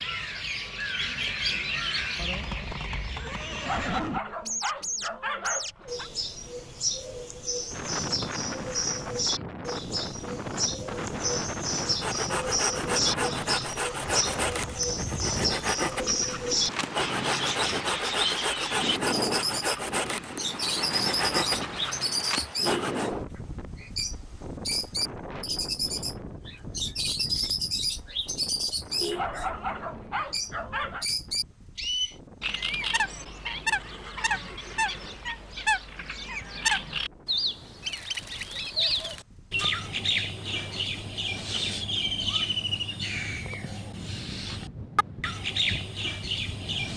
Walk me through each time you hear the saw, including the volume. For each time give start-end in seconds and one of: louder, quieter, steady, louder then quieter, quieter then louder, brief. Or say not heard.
11.8-23.1 steady.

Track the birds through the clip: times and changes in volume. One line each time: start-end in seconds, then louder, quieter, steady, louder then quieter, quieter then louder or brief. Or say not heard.
0.0-46.9 steady.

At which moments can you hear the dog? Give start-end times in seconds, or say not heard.
3.6-6.1, 29.1-31.1.